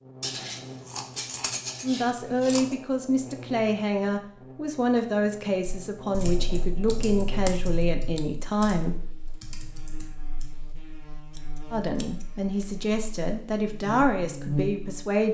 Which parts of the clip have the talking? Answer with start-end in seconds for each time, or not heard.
1.8-8.9, 11.7-15.2.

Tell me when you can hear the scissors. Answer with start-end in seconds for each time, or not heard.
0.2-2.8, 6.2-8.2, 11.3-12.7.